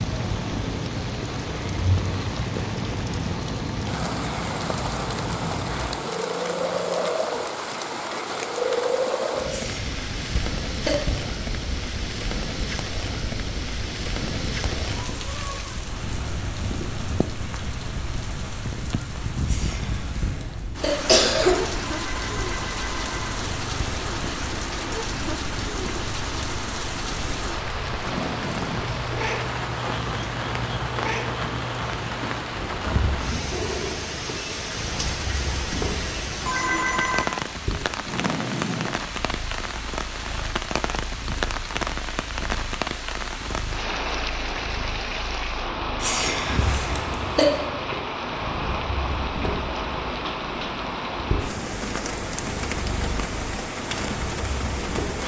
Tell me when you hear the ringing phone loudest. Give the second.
37 s.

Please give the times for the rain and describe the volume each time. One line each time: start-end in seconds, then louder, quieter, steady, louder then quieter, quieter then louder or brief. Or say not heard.
0.0-55.2 steady.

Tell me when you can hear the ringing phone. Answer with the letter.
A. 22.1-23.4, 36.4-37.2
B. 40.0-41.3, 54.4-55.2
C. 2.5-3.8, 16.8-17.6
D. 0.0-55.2
A.